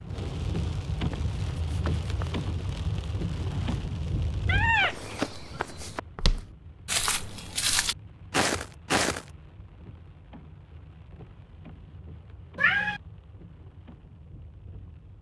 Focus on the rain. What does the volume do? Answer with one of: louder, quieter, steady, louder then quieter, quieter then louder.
quieter.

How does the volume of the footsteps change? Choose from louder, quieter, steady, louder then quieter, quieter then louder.
louder.